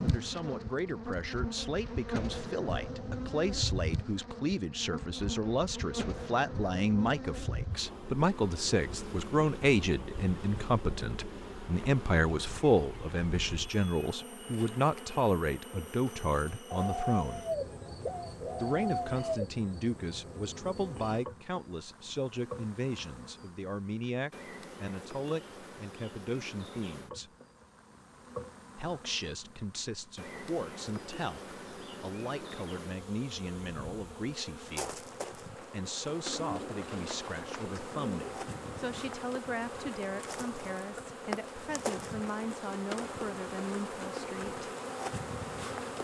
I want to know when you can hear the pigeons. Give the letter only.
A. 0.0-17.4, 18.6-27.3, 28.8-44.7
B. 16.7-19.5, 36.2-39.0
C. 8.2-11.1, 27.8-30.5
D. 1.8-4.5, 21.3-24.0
B.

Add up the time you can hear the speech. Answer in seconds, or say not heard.
42 s.